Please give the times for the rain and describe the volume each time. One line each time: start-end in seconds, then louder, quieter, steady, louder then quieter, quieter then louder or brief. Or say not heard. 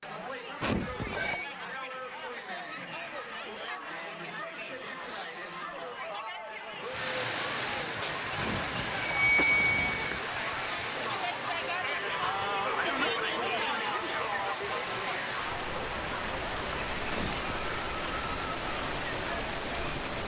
6.8-20.2 quieter then louder.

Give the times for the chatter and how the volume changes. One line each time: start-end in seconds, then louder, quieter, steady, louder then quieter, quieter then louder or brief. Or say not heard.
0.0-20.2 louder then quieter.